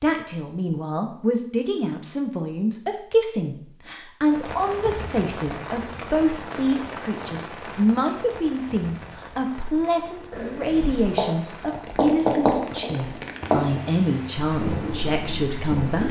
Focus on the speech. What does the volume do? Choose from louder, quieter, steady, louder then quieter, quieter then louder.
steady.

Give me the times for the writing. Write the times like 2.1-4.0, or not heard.
10.3-16.0.